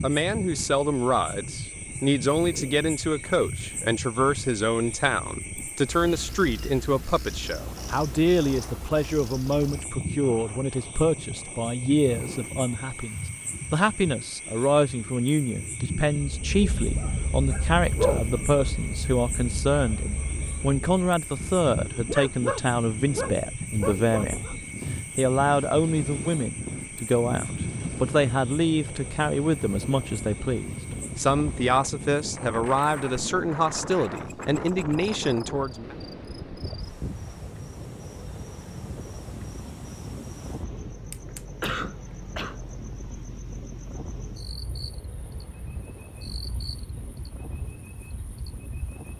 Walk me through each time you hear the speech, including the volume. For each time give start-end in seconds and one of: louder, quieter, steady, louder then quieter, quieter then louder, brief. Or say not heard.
0.0-24.4 steady
25.1-36.0 steady.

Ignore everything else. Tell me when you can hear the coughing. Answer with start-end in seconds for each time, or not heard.
41.6-42.6.